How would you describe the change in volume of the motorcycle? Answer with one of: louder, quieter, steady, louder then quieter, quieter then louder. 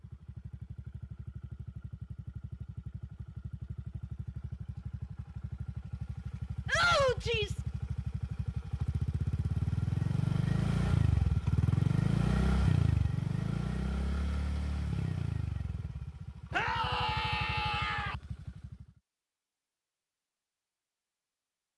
louder then quieter.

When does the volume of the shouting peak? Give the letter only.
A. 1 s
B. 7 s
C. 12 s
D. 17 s
B.